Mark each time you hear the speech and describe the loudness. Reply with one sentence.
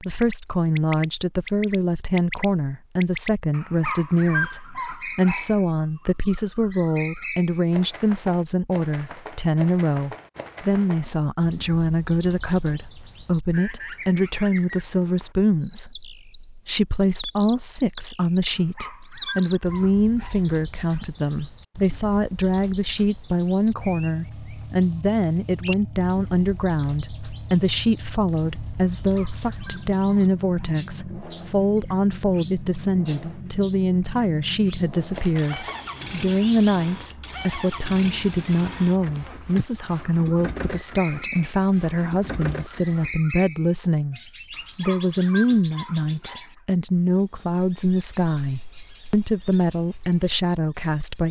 You can hear the speech from 0.0 to 51.2 s, at a steady volume.